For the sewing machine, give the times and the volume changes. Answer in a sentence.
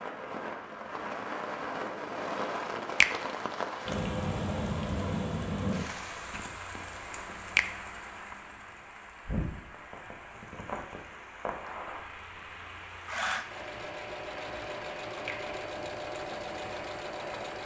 You can hear the sewing machine from 12.9 to 17.6 s, at a steady volume.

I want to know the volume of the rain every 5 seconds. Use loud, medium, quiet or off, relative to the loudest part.
loud, loud, medium, medium.